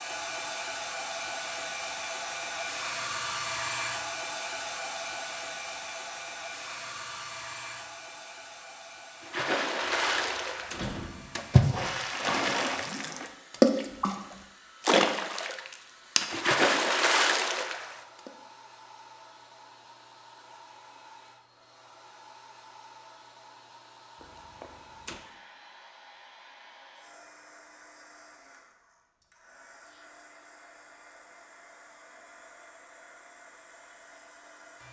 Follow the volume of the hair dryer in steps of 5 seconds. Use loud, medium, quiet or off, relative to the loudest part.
loud, medium, quiet, quiet, quiet, quiet, quiet.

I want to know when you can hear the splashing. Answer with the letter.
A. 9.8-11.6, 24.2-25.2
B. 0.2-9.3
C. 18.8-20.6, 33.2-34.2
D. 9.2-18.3
D.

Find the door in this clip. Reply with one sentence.
You can hear the door from 9.8 to 11.6 s and from 24.2 to 25.2 s.